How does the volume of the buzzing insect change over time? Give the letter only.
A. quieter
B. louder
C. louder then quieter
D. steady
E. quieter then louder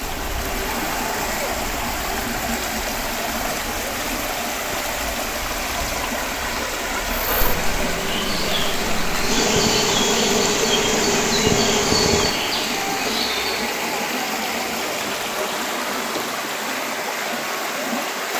C.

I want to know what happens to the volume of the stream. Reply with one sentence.
The volume of the stream stays about the same.